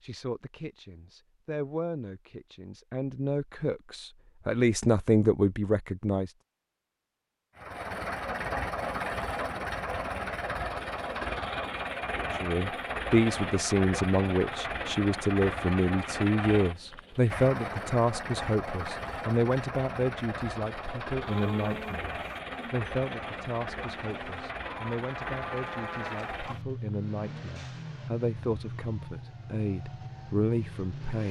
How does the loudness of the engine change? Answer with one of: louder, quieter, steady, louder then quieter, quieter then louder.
quieter.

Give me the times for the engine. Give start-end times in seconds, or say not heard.
7.5-31.2.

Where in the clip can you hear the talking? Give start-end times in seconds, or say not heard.
0.0-6.3, 12.3-31.2.